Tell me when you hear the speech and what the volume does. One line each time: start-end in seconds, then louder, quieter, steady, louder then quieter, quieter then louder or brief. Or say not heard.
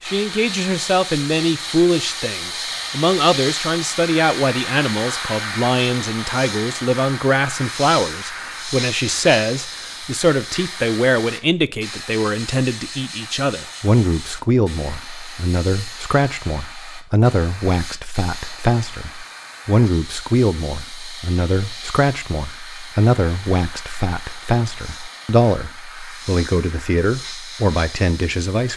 0.0-28.7 steady.